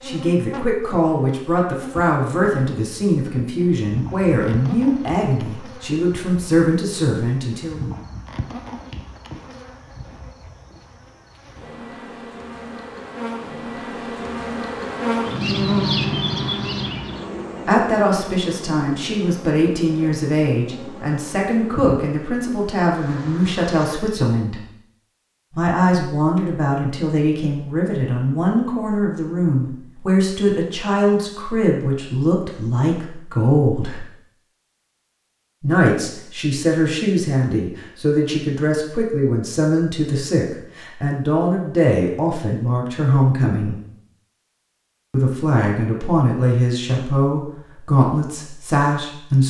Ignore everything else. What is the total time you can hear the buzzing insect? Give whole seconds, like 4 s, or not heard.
24 s.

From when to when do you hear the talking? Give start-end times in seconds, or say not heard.
0.0-7.9, 17.6-24.6, 25.6-34.0, 35.6-43.8, 45.1-49.4.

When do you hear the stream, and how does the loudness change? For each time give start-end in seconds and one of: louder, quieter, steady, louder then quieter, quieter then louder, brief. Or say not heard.
not heard.